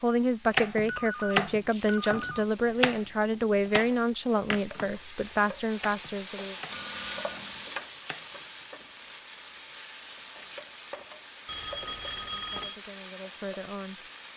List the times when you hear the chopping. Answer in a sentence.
The chopping can be heard from 0.5 to 3.0 s and from 3.7 to 8.3 s.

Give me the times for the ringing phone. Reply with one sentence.
You can hear the ringing phone from 0.8 to 2.5 s, from 6.7 to 7.7 s and from 11.4 to 12.8 s.